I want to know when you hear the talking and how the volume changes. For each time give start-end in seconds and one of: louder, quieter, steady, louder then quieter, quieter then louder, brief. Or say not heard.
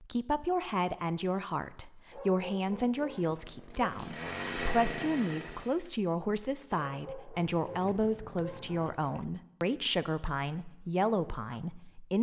0.0-12.1 steady.